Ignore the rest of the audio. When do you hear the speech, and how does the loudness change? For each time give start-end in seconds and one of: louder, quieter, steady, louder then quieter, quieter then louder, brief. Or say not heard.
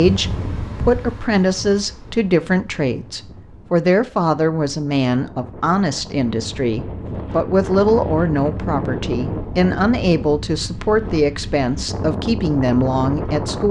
0.0-13.6 steady.